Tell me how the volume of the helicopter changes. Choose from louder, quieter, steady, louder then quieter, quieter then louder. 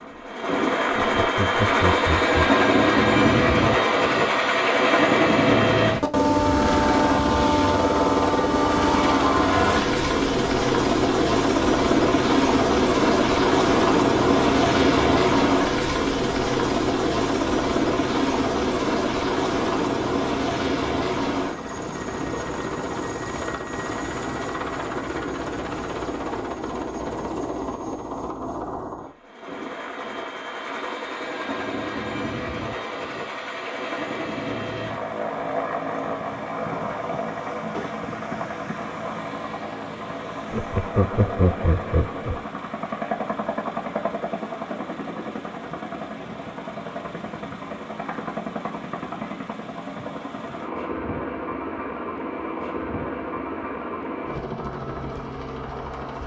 quieter.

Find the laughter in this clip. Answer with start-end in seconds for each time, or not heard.
0.9-2.6, 40.5-42.5.